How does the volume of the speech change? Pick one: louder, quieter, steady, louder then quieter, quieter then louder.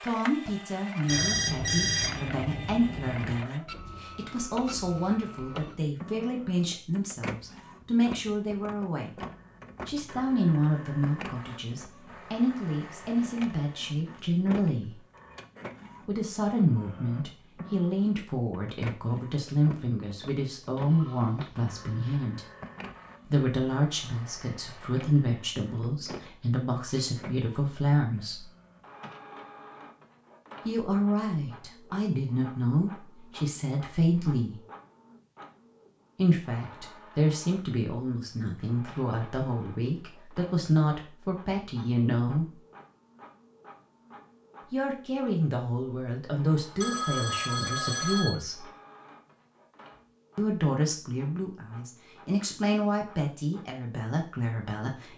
steady.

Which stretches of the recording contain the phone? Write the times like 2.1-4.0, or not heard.
1.1-3.5, 20.8-22.2, 46.8-48.3.